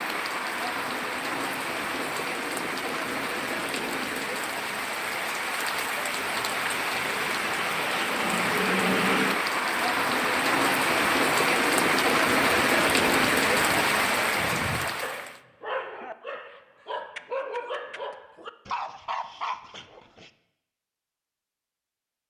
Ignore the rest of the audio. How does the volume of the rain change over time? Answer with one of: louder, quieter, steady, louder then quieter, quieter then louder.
louder.